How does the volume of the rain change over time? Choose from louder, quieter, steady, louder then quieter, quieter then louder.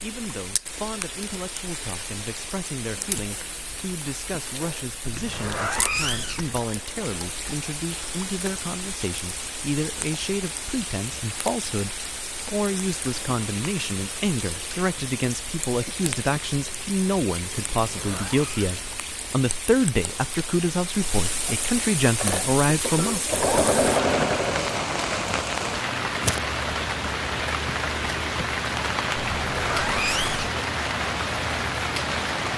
louder.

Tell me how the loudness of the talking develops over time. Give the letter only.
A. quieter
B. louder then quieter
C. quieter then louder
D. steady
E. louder
E.